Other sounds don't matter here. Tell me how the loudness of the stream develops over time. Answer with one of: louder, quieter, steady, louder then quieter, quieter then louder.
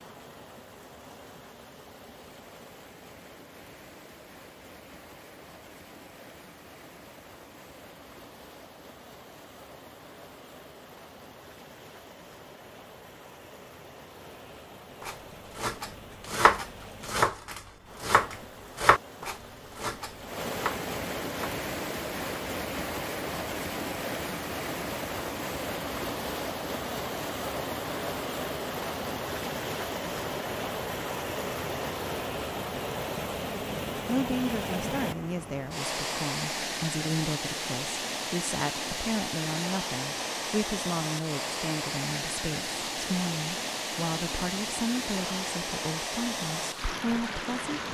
louder.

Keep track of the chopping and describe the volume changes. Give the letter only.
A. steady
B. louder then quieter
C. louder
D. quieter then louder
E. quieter
E.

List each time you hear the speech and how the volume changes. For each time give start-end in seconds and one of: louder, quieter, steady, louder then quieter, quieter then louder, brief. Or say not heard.
34.0-47.8 steady.